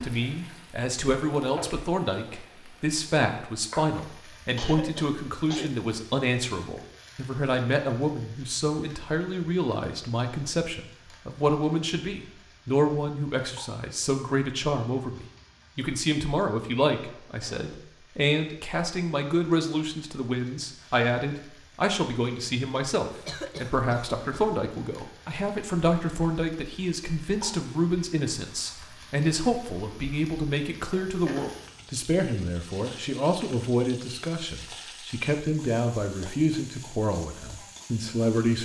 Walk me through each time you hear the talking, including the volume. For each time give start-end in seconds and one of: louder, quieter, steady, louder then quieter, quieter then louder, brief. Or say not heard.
0.0-38.6 steady.